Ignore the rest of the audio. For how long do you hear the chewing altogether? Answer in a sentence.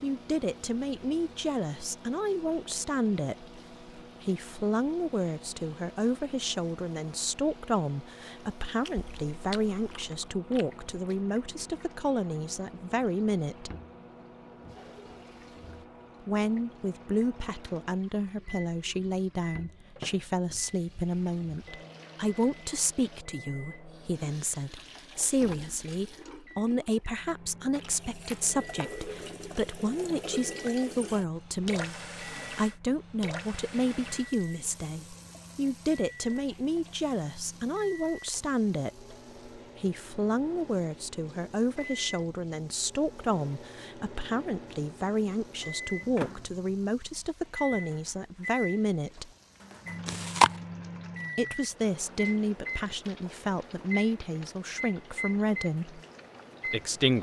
You can hear the chewing for 4 seconds altogether.